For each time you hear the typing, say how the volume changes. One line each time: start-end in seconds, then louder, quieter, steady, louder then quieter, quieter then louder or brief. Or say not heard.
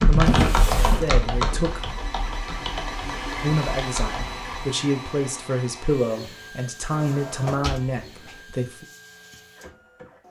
0.0-4.7 quieter.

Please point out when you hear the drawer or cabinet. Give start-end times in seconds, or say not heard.
0.2-1.2, 6.9-8.3.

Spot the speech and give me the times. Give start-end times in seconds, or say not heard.
0.1-1.8, 3.4-8.8.